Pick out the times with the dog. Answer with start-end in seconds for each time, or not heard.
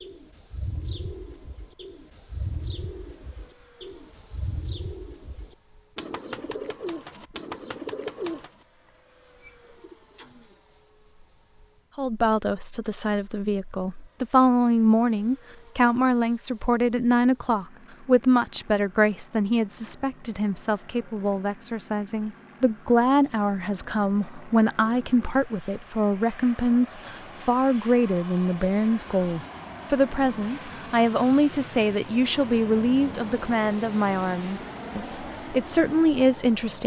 not heard.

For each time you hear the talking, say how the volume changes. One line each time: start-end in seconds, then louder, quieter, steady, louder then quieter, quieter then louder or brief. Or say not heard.
11.9-36.8 steady.